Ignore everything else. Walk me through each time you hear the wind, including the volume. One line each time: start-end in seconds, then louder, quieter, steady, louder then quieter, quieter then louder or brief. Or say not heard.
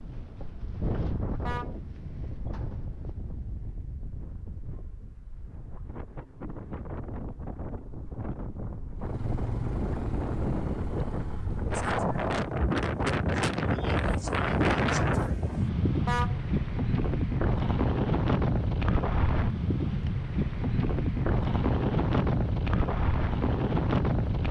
0.0-24.4 louder.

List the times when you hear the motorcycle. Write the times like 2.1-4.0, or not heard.
8.9-12.2.